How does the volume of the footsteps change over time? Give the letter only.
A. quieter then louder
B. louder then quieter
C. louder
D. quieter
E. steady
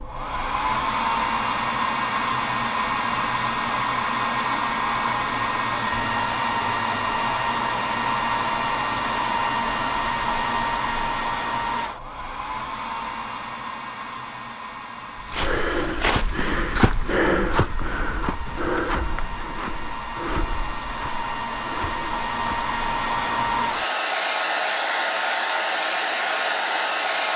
D.